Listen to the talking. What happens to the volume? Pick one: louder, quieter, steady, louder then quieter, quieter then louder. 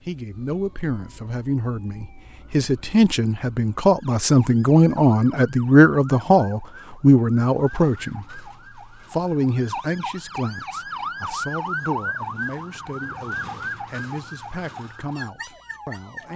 louder then quieter.